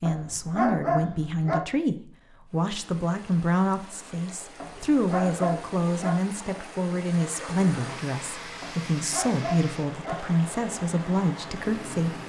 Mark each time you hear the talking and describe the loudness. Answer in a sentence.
The talking can be heard from 0.0 to 12.2 s, at a steady volume.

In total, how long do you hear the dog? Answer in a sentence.
You can hear the dog for 5 seconds altogether.